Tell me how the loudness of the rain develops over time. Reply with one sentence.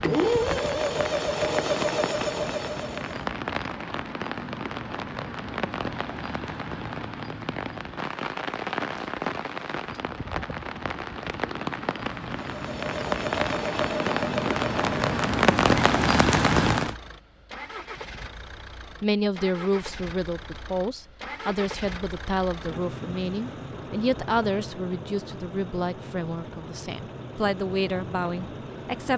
The volume of the rain goes up.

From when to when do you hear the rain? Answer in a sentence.
The rain can be heard from 0.0 to 16.9 s.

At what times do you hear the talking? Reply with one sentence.
You can hear the talking from 19.0 to 29.1 s.